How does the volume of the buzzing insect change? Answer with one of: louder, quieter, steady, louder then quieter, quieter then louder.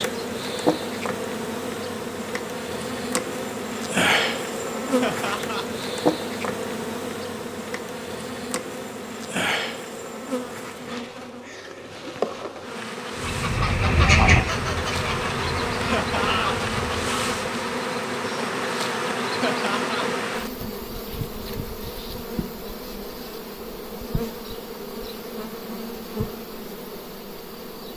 quieter.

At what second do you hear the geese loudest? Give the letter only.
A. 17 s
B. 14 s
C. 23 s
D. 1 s
B.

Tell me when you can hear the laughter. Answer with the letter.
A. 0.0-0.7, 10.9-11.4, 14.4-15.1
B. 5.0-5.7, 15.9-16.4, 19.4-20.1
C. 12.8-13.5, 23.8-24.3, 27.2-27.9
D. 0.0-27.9
B.